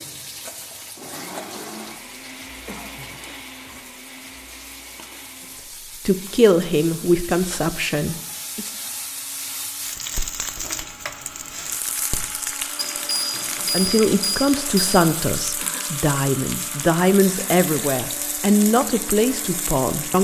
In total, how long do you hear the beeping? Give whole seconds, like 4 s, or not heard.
2 s.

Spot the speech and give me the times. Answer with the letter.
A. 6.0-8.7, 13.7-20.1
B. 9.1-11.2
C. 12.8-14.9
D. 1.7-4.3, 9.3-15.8
A.